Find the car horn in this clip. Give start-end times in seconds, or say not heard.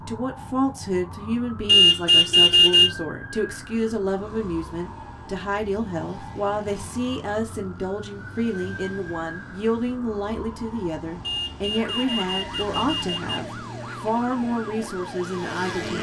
1.6-2.9, 11.2-13.4.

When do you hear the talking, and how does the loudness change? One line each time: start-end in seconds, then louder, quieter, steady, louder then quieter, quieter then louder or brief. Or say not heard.
0.0-15.9 steady.